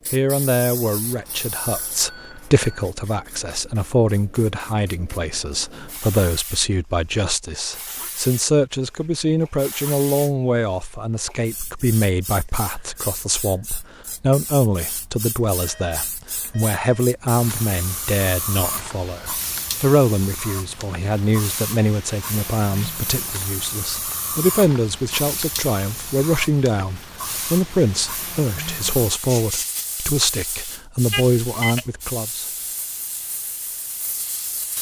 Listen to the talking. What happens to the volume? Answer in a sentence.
The loudness of the talking stays about the same.